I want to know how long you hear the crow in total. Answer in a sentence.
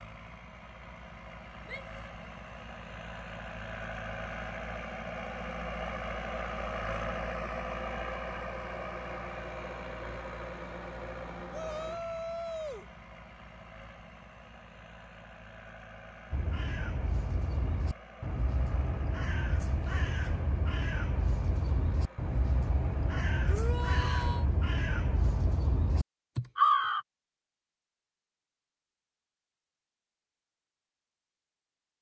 The crow can be heard for 11 seconds in total.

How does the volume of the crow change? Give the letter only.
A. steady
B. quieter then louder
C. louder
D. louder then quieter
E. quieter
C.